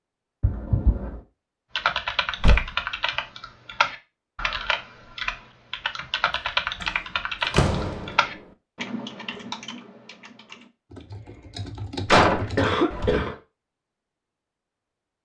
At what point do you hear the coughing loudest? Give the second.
13 s.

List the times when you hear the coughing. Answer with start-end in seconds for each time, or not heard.
0.4-1.2, 12.6-13.3.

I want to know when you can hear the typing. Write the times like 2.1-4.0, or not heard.
1.8-13.2.